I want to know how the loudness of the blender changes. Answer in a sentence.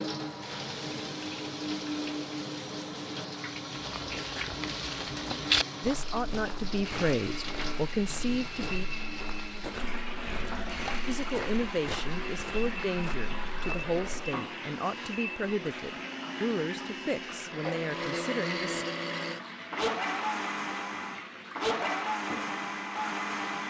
The loudness of the blender goes up.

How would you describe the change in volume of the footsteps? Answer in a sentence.
The volume of the footsteps goes down.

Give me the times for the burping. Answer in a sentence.
You can hear the burping from 10.2 to 11.0 s.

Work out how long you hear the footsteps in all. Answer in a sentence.
You can hear the footsteps for 11 seconds altogether.